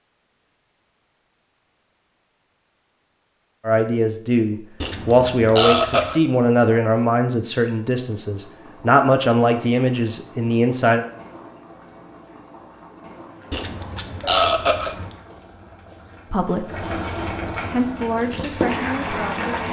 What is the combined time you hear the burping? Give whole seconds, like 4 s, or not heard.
3 s.